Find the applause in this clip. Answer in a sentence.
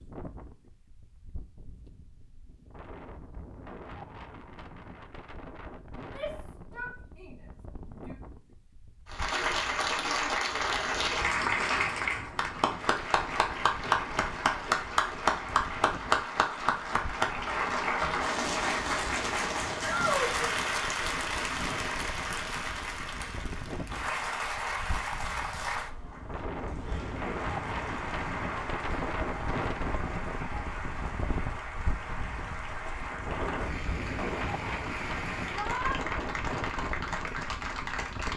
The applause can be heard from 9.1 to 38.3 s.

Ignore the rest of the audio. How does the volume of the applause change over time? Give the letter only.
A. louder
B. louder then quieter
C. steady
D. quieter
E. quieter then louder
D.